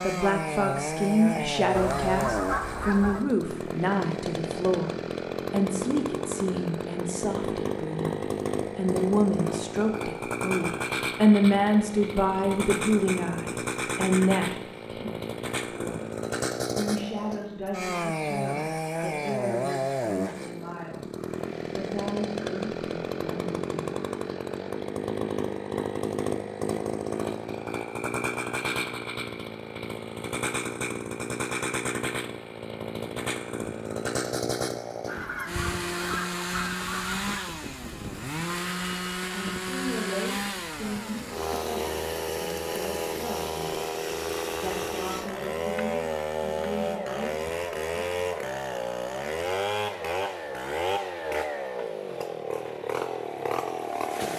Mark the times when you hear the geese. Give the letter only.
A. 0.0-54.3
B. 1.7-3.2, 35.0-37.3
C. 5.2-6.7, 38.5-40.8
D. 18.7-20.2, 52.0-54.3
B.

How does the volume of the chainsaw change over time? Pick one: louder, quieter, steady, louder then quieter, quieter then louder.
steady.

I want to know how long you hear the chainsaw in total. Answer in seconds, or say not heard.
54 s.